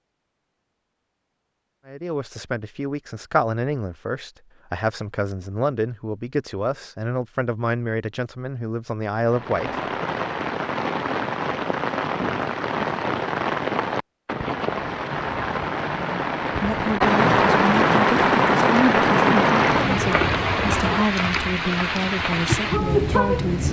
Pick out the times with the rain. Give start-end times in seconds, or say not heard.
9.3-23.6.